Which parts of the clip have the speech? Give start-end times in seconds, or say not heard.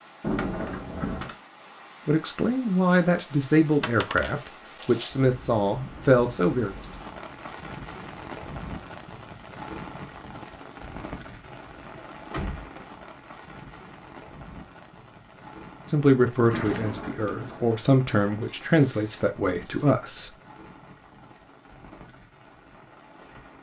2.0-6.8, 15.9-20.3.